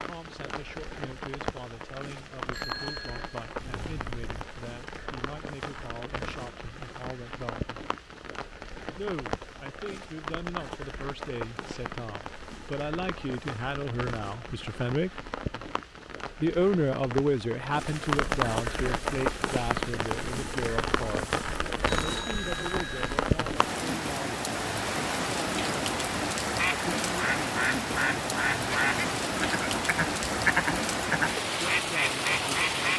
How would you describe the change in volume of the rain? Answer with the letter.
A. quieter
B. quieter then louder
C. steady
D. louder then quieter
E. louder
E.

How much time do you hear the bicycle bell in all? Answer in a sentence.
The bicycle bell can be heard for 3 seconds in total.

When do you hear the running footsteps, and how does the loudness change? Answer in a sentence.
The running footsteps can't be heard in this clip.